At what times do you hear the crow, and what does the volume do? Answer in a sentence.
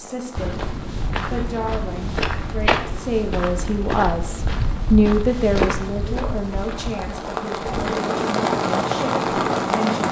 The crow can't be heard in this clip.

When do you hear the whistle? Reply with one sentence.
You can't hear the whistle here.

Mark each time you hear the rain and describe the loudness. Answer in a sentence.
You can hear the rain from 0.0 to 10.0 s, getting louder.